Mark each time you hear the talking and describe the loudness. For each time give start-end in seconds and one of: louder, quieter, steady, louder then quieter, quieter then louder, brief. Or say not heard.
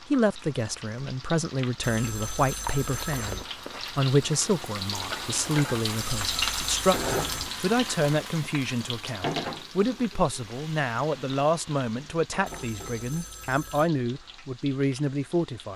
0.1-15.7 steady.